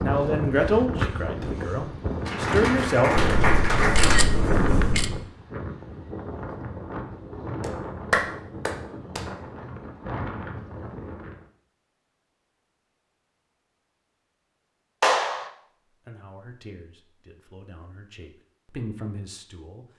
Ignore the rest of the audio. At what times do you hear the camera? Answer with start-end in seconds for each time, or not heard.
3.1-5.1.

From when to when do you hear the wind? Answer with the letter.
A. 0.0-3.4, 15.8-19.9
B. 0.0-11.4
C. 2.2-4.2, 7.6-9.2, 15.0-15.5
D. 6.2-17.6
B.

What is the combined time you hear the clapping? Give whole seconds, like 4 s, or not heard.
4 s.